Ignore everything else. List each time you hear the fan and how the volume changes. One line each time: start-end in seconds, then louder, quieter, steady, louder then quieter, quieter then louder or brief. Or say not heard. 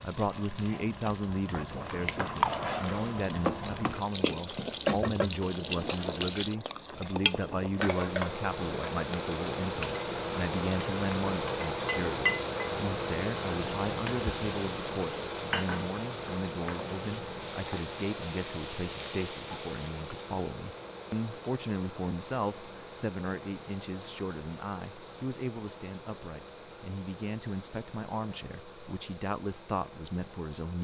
7.8-30.7 quieter.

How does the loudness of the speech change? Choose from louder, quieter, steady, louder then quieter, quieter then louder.
steady.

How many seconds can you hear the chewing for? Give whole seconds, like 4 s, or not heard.
6 s.